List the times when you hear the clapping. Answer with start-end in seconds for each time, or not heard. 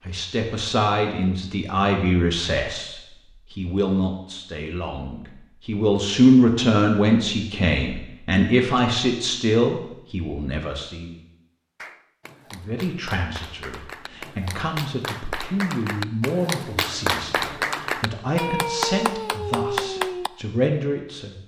11.8-20.3.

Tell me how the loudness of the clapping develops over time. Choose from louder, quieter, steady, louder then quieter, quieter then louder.
louder.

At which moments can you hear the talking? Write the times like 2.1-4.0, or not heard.
0.1-11.2, 12.5-21.4.